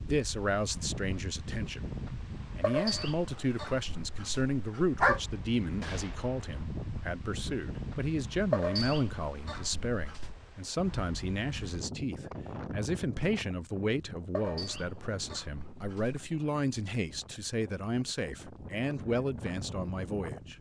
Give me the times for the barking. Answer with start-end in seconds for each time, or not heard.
2.6-5.2, 8.5-10.3, 14.3-16.3.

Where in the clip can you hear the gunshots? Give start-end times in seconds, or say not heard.
5.8-6.7.